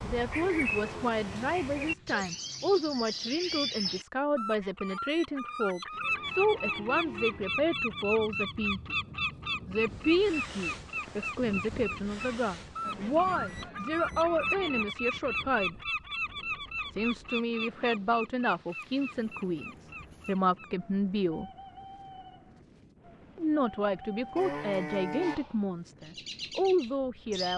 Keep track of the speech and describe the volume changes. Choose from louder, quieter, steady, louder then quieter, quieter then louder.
steady.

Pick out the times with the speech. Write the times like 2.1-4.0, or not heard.
0.0-8.9, 9.7-15.8, 16.9-21.5, 23.4-27.5.